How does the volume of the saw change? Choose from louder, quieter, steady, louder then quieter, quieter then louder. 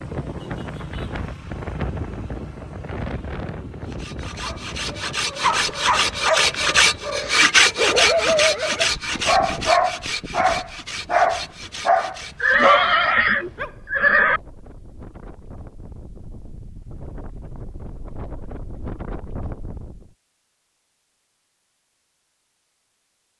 louder then quieter.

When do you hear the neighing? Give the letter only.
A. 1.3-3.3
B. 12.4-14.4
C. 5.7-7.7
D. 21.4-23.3
B.